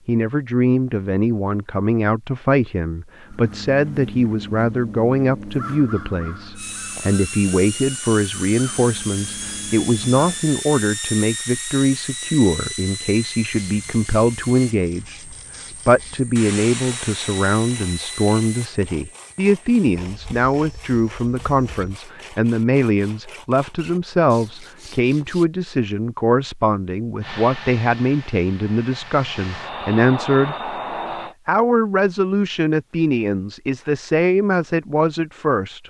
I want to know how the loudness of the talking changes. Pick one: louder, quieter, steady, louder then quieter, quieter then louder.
steady.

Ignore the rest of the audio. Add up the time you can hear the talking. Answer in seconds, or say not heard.
35 s.